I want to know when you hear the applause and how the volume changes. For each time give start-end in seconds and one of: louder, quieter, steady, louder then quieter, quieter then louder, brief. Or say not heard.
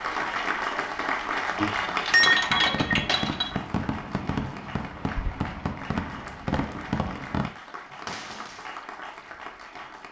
0.0-10.0 quieter.